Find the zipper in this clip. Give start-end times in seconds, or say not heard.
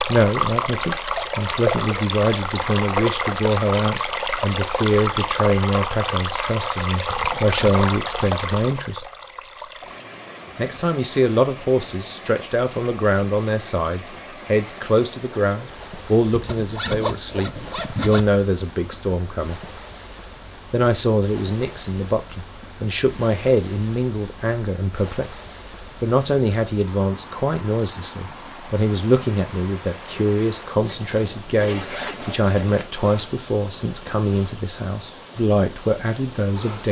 7.0-7.9, 16.3-18.2, 30.8-32.9.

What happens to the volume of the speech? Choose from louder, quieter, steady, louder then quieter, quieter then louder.
steady.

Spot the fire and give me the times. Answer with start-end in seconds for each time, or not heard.
not heard.